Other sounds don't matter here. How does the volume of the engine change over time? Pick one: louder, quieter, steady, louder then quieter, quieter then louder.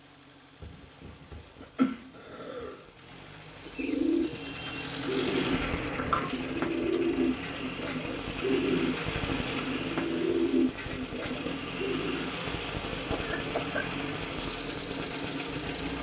louder.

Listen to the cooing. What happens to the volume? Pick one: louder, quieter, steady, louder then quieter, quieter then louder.
steady.